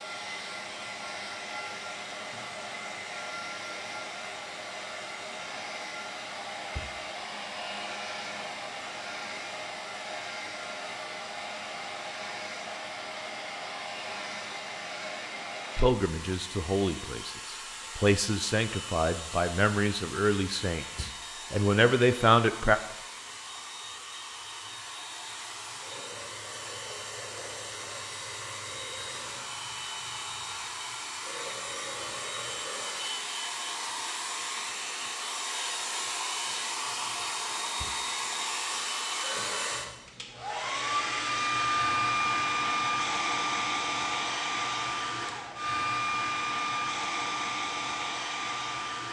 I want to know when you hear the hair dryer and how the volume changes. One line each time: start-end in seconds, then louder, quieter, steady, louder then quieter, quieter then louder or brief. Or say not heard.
0.0-49.0 louder.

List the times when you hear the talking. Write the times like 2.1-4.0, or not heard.
15.8-22.8.